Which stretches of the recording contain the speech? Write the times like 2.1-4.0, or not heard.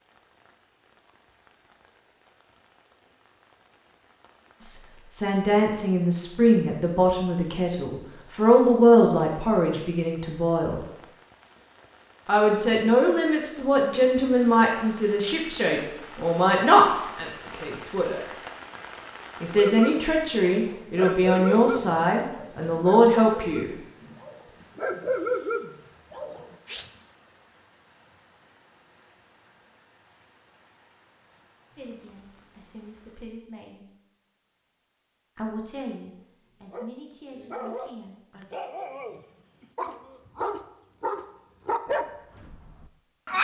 4.6-10.8, 12.2-18.2, 19.4-23.8, 31.8-33.9, 35.4-38.5.